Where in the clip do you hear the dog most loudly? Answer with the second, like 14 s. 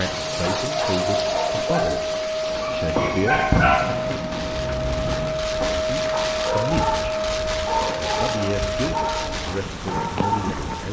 4 s.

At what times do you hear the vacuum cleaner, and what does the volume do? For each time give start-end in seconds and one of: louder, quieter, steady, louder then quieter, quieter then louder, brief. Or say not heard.
0.0-9.4 steady.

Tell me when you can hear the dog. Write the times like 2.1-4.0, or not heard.
0.3-10.8.